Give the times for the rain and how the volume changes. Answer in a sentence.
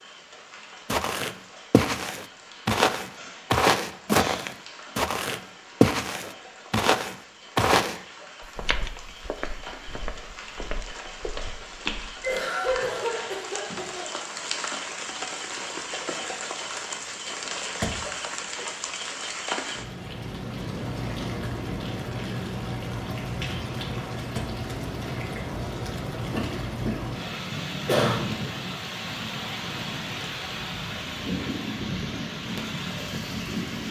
The rain can be heard from 0.0 to 33.8 s, getting louder.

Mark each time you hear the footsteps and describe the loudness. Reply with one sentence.
The footsteps can be heard from 0.8 to 12.2 s, getting quieter.